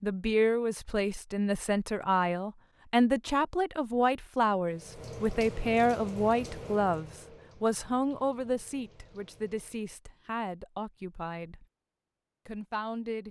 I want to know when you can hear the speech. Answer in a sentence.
The speech can be heard from 0.0 to 11.7 s and from 12.4 to 13.2 s.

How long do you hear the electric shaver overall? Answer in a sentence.
You can't hear the electric shaver here.